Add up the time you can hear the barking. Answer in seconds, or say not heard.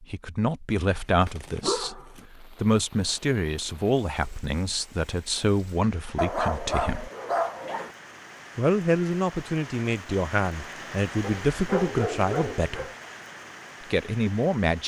5 s.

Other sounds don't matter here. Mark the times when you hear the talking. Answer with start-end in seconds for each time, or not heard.
0.0-7.1, 8.6-12.9, 13.8-14.8.